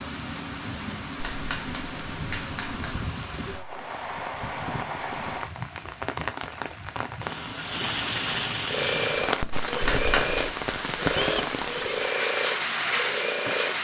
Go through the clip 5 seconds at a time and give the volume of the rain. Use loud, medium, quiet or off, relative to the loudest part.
medium, loud, loud.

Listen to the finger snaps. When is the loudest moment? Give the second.
10 s.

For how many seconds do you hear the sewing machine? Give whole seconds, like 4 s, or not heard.
5 s.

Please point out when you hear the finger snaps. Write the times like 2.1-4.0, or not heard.
1.1-3.1, 9.8-10.5.